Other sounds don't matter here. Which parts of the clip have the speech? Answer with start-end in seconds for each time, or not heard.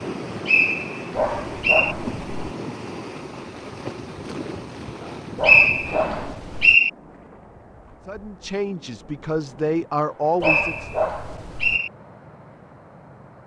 8.1-11.1.